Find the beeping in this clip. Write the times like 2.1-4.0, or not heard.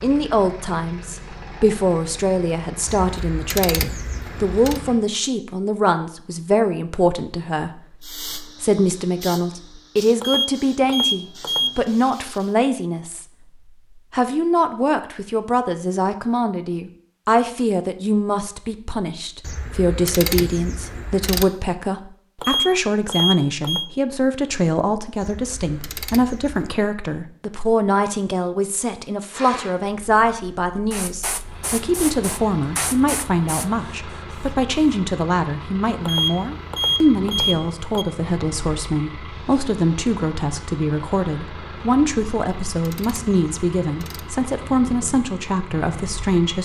10.2-11.7, 22.4-23.9, 36.0-38.0.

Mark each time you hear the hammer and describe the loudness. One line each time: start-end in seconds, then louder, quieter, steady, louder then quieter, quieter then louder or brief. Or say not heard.
not heard.